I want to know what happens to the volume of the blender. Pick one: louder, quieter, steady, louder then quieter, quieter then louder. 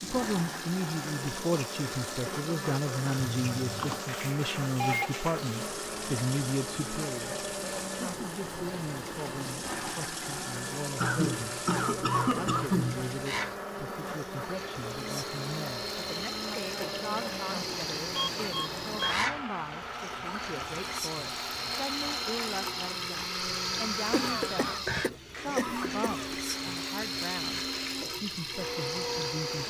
steady.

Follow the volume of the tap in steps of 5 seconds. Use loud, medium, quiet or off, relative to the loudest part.
medium, medium, medium, loud, loud, loud.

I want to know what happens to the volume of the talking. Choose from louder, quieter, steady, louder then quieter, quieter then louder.
quieter.